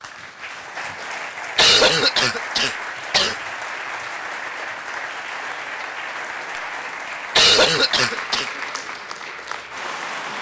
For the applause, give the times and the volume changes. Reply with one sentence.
You can hear the applause from 0.0 to 10.3 s, at a steady volume.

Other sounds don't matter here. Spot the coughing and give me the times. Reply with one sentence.
The coughing can be heard from 1.6 to 3.4 s and from 7.3 to 8.4 s.